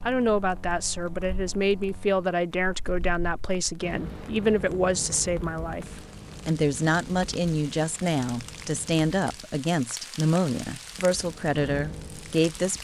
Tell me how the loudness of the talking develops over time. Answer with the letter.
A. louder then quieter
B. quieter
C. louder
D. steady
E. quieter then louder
D.